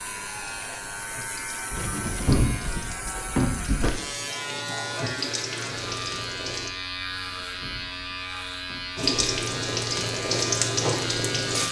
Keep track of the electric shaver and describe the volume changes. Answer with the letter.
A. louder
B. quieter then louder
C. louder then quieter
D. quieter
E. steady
E.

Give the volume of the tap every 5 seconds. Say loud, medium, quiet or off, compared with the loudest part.
quiet, loud, loud.